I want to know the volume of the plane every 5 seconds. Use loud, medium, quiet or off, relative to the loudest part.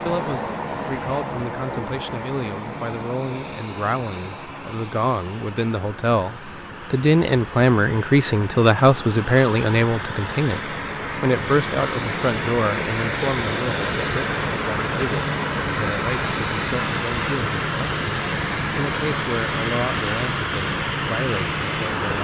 medium, medium, loud, loud, loud.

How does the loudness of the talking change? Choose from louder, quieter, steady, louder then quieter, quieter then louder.
louder then quieter.